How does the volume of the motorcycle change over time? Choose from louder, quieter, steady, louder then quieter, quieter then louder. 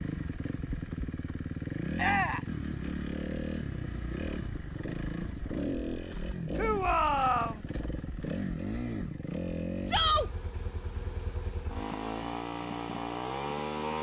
steady.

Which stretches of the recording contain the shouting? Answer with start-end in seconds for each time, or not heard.
1.9-2.5, 6.5-7.6, 9.8-10.3.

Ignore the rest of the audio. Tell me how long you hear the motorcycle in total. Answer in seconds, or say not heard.
14 s.